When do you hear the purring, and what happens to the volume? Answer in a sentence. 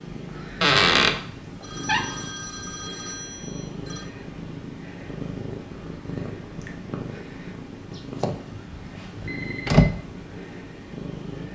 You can hear the purring from 0.0 to 11.5 s, at a steady volume.